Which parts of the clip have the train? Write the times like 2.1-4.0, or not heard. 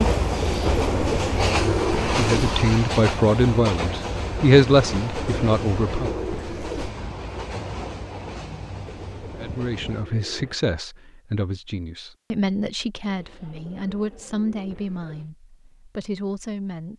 0.0-10.1.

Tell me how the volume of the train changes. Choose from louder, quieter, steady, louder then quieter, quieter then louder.
quieter.